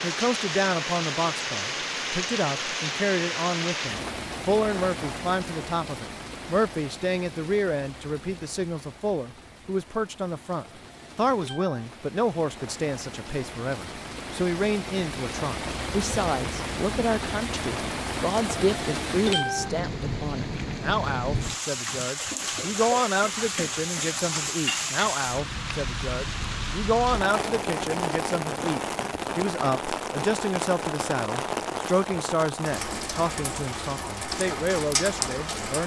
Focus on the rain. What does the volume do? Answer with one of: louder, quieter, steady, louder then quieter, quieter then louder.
quieter then louder.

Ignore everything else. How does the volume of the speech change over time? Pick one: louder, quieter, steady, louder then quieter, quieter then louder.
steady.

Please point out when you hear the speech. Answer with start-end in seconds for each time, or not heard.
0.0-35.8.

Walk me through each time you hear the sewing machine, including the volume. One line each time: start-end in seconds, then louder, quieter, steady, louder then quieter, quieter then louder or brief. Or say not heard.
not heard.